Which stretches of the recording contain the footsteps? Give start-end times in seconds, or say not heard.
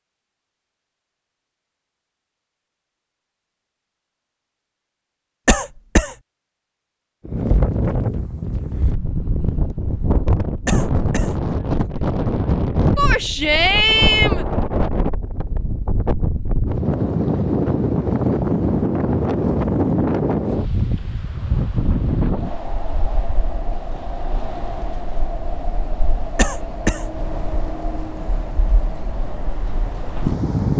not heard.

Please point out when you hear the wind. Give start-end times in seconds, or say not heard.
7.2-30.7.